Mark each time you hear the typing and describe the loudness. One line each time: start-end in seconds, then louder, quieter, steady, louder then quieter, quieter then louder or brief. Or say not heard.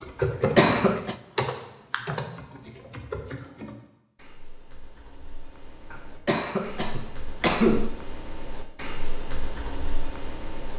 0.0-10.7 quieter then louder.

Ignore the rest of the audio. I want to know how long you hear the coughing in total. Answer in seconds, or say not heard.
3 s.